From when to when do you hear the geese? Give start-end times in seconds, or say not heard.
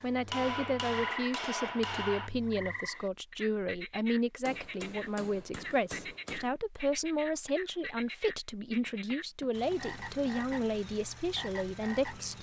not heard.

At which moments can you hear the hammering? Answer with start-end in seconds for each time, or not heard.
0.3-2.3, 4.5-6.5, 8.8-10.7.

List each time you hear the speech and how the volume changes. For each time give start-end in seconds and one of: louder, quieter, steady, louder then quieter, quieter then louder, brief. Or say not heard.
0.0-12.3 steady.